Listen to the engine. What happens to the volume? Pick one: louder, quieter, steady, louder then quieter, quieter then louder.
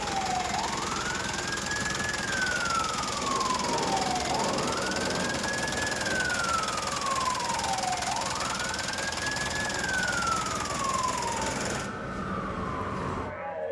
steady.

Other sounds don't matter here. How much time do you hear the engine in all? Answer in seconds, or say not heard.
12 s.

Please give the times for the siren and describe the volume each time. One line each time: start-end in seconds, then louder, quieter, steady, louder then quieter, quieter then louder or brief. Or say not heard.
0.0-13.6 steady.